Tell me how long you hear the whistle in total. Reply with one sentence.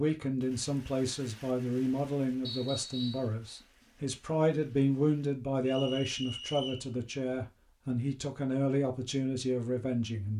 You can hear the whistle for 2 seconds altogether.